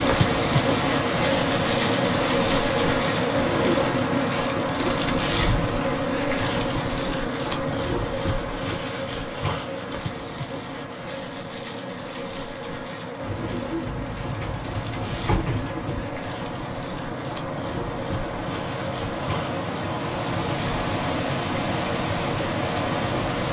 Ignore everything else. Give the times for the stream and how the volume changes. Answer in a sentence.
The stream can be heard from 0.0 to 23.4 s, getting quieter then louder.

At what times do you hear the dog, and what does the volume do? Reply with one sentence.
You can't hear the dog here.